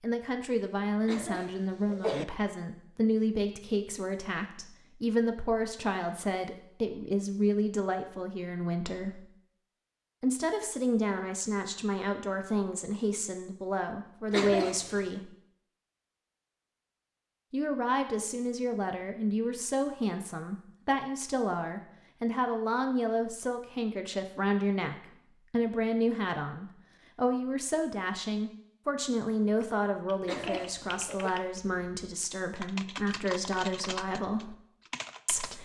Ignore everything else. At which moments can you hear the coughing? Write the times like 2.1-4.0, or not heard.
1.1-2.2, 14.3-15.2, 30.2-31.3.